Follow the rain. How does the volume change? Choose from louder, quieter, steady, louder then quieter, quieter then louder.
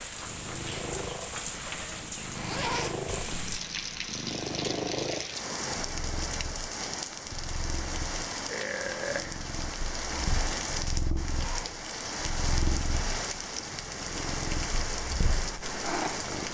steady.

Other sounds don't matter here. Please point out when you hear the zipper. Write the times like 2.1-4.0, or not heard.
2.3-3.0, 11.2-11.8.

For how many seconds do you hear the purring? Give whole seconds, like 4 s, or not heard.
16 s.